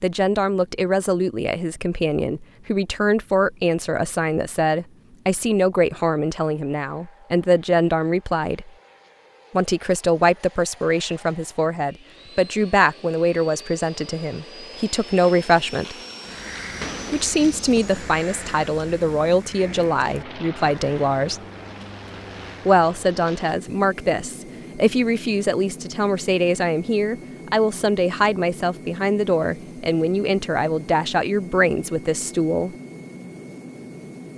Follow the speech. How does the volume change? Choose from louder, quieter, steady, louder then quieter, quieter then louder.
steady.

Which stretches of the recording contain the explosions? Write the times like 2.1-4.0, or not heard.
16.8-17.4.